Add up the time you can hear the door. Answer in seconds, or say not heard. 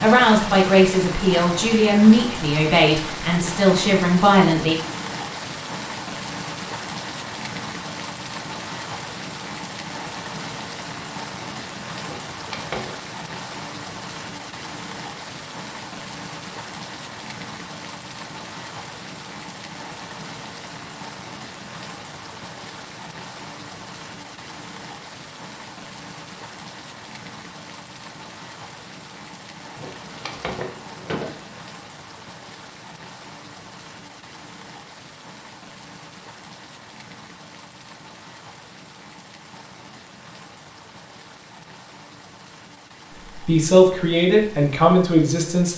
3 s.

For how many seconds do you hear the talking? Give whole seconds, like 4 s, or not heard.
7 s.